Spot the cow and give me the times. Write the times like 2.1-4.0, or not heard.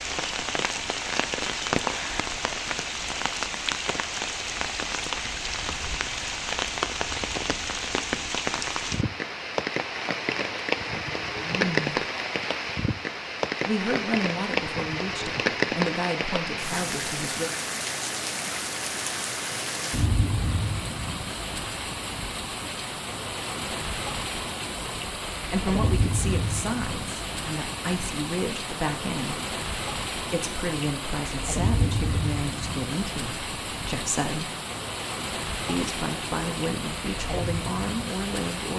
not heard.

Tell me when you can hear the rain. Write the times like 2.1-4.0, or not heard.
0.0-38.7.